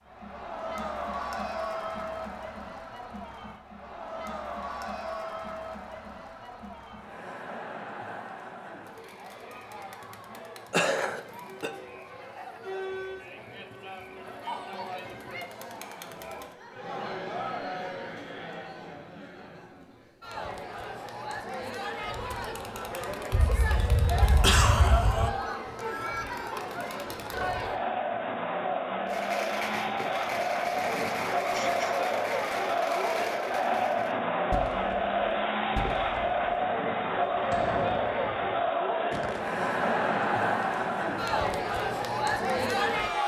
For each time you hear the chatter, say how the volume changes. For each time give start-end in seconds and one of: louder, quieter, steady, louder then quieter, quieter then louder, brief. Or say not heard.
0.1-43.2 louder.